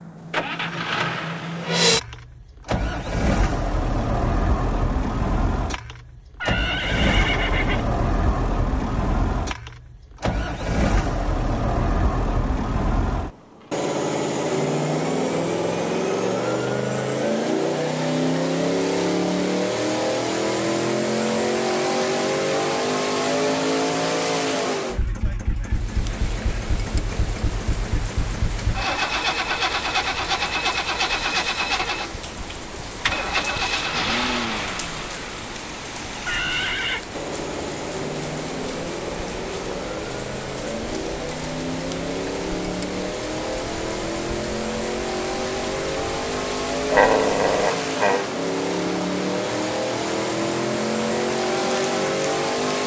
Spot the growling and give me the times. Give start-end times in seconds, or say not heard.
46.9-48.2.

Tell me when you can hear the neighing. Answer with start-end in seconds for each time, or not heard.
6.4-7.8, 36.2-37.0.